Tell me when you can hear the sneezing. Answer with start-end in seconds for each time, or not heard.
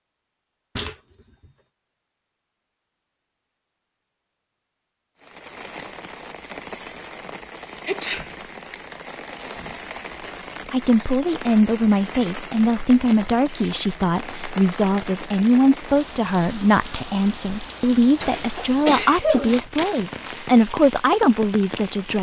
7.8-8.2, 18.2-19.6.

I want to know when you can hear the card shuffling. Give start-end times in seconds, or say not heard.
0.8-1.5, 19.4-20.4.